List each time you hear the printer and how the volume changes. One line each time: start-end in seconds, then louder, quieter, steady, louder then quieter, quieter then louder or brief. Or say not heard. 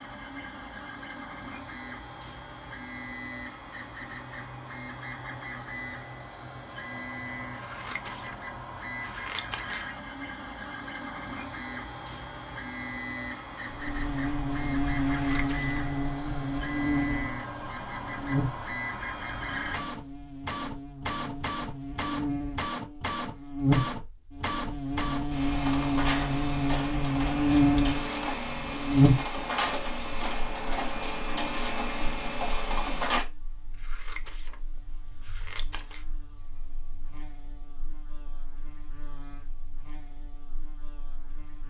0.0-33.2 louder.